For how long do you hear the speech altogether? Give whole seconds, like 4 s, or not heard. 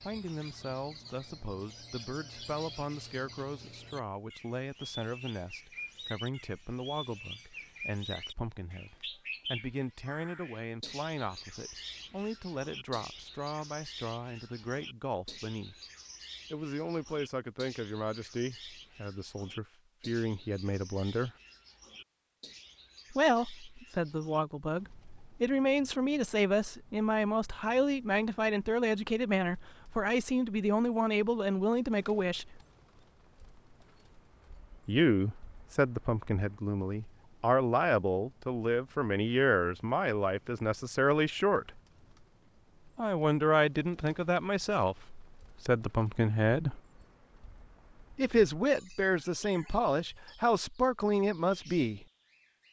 45 s.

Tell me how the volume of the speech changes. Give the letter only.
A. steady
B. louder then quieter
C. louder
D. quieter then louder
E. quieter
C.